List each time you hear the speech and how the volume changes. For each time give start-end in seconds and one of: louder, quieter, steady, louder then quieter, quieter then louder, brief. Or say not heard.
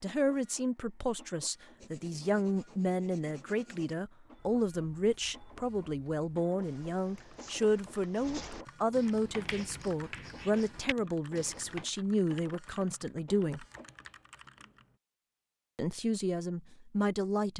0.0-13.7 steady
15.8-17.5 brief.